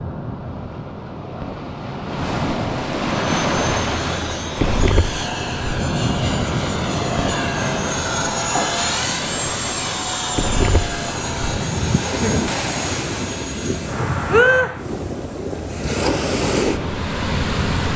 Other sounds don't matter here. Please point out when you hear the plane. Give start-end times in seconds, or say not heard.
3.2-14.9.